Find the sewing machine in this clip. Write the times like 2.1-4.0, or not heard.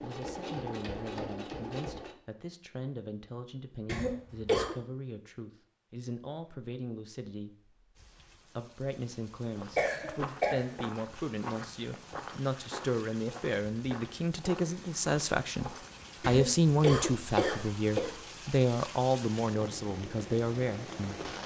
0.0-2.1.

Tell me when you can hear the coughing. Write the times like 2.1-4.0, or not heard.
3.9-4.8, 9.8-10.8, 16.2-18.1.